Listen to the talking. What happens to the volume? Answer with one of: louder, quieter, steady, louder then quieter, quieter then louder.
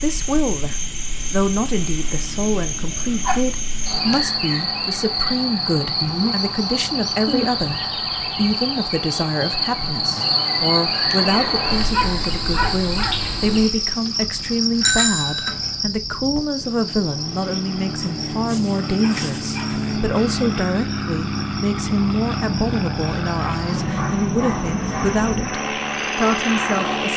steady.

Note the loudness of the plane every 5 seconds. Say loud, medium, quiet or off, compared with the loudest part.
quiet, quiet, quiet, medium, loud, loud.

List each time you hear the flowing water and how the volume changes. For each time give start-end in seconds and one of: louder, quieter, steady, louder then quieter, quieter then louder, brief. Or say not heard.
not heard.